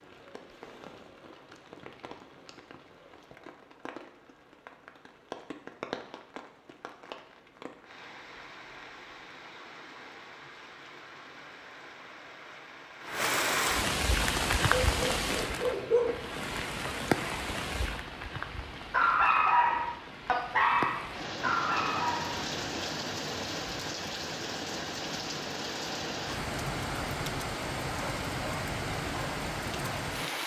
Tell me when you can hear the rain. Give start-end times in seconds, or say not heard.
0.0-30.4.